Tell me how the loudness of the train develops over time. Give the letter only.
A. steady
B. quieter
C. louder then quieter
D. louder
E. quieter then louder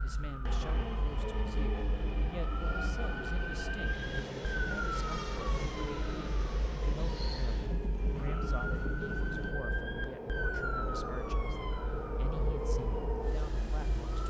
A.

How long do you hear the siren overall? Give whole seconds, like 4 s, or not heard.
14 s.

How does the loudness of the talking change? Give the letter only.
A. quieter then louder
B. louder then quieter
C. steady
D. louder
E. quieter
C.